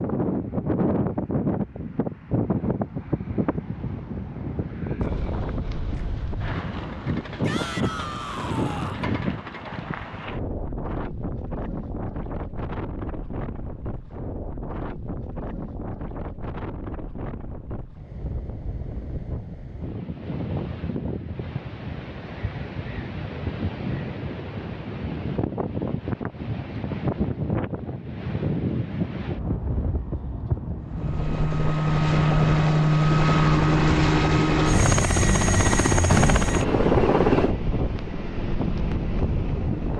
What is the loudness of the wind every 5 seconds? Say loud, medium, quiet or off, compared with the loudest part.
loud, loud, medium, medium, medium, loud, loud, loud.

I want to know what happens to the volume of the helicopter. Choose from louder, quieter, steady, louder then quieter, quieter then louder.
quieter.